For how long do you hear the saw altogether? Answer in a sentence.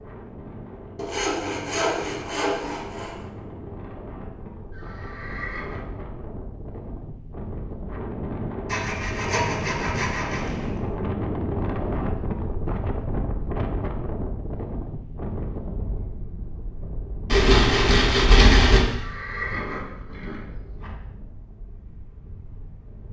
The saw can be heard for 6 seconds in total.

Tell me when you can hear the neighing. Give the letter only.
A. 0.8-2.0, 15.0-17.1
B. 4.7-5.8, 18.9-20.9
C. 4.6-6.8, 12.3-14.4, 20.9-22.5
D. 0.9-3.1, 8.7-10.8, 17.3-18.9
B.